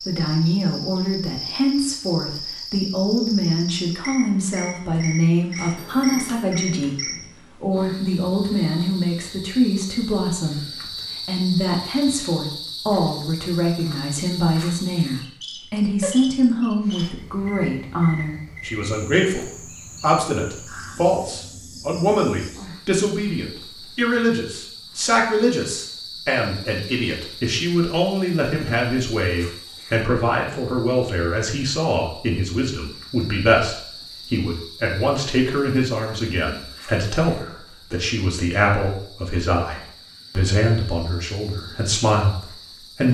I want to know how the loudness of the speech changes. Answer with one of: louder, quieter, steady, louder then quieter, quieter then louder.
steady.